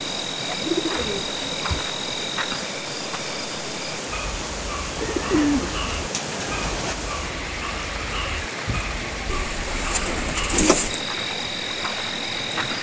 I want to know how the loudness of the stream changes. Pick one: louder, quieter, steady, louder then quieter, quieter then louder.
steady.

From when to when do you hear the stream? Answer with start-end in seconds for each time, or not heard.
0.0-12.7.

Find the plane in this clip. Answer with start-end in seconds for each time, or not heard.
not heard.